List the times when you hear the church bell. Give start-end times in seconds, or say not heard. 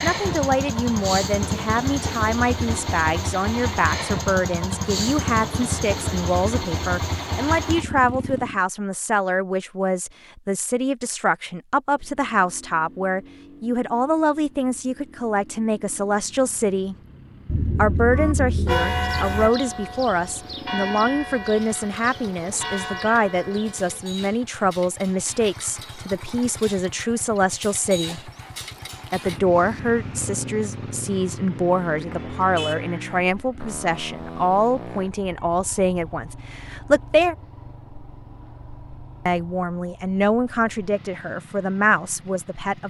18.1-24.1.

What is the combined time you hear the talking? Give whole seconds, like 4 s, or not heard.
39 s.